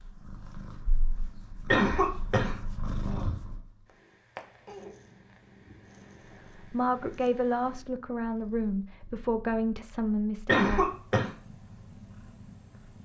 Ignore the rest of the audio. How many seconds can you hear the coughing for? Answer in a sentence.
The coughing can be heard for 2 seconds in total.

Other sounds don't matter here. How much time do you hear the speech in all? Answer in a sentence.
You can hear the speech for 4 seconds altogether.